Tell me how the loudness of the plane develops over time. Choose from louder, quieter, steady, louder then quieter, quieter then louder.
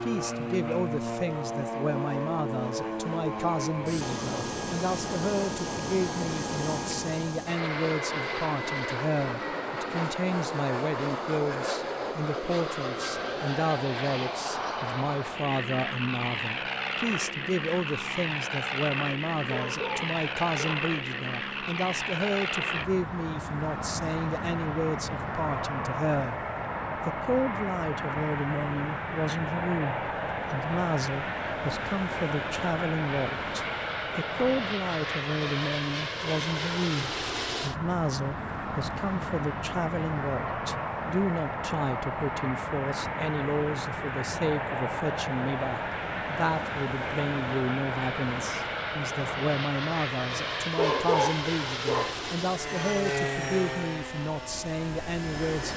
steady.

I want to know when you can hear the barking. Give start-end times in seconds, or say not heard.
19.4-20.9, 50.8-52.1.